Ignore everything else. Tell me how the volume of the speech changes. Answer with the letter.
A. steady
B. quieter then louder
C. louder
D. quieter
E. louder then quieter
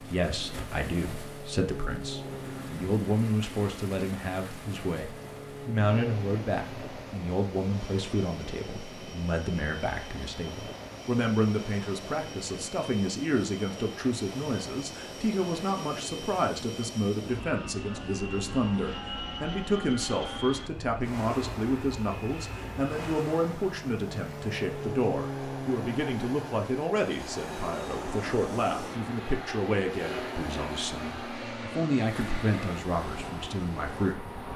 A.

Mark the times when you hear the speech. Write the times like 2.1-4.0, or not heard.
0.0-34.5.